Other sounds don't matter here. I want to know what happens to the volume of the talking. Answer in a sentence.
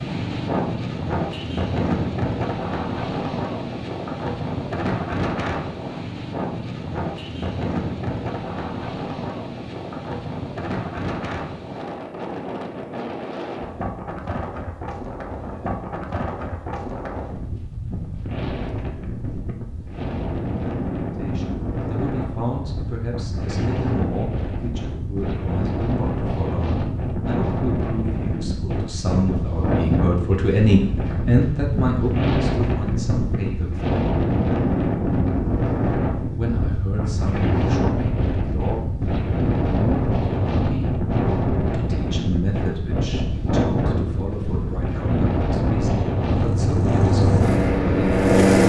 The loudness of the talking goes up, then down.